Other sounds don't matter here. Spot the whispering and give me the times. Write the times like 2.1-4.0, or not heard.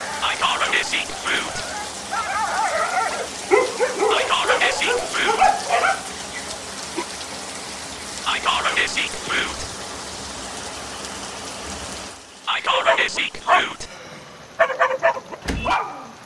0.2-1.6, 4.1-5.5, 8.2-9.7, 12.4-13.9.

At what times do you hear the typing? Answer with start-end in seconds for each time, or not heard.
not heard.